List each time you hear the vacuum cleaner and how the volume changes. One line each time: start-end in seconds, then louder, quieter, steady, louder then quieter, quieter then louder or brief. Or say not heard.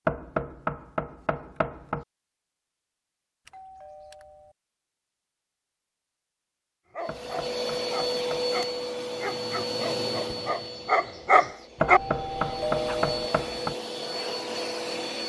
7.0-15.2 quieter then louder.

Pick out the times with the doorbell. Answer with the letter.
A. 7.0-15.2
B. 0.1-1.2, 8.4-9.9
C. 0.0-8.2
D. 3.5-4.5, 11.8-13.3
D.